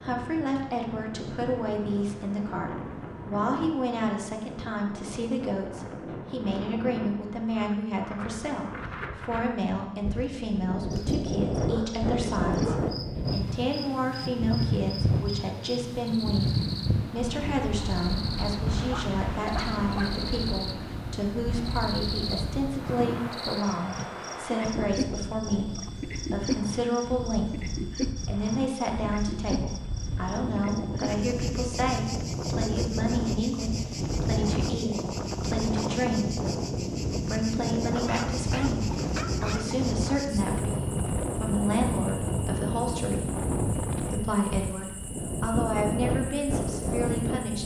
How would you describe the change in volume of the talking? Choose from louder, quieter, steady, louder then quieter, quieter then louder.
steady.